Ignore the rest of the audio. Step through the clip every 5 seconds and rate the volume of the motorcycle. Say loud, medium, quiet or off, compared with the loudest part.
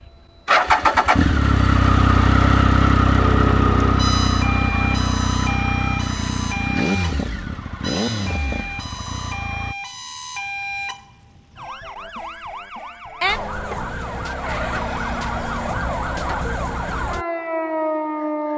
loud, medium, off, off.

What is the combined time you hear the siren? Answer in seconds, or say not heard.
15 s.